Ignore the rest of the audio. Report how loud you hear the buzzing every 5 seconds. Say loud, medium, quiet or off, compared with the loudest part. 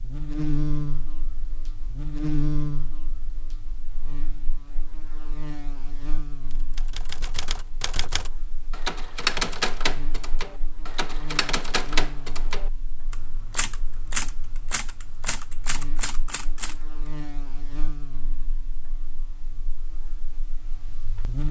loud, quiet, quiet, quiet, medium.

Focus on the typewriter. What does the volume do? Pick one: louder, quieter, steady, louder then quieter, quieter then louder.
louder then quieter.